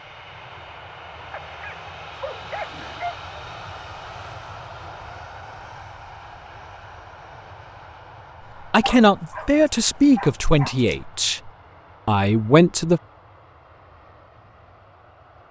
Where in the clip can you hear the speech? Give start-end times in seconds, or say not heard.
8.7-13.0.